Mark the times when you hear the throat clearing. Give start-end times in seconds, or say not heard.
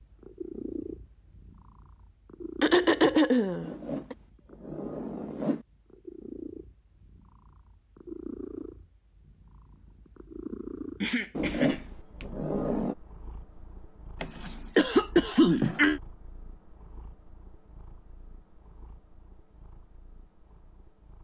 2.6-4.2, 11.0-12.2, 14.2-16.0.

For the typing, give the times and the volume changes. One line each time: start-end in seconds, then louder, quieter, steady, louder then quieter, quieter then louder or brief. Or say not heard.
not heard.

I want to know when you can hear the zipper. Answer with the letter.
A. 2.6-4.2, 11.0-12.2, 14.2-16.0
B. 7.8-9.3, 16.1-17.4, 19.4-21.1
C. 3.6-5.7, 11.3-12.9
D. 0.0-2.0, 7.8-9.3
C.